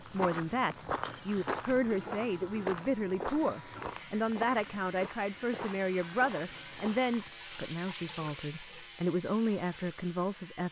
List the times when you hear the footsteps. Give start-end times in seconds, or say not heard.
0.0-7.3.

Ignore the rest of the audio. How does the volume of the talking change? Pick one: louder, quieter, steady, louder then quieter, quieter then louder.
steady.